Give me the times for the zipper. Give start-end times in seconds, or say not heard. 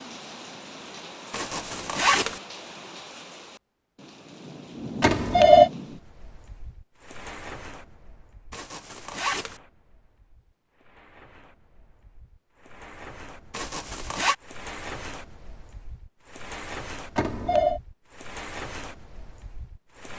1.3-2.4, 8.5-9.6, 13.5-14.3.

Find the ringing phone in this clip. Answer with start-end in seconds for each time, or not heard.
5.0-5.7, 17.1-17.8.